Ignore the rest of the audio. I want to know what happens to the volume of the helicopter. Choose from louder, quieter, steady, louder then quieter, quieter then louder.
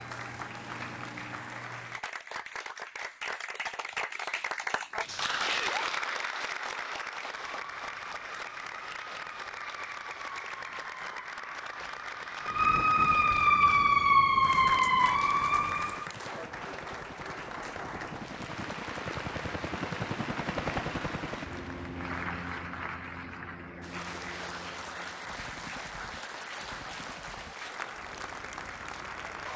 louder then quieter.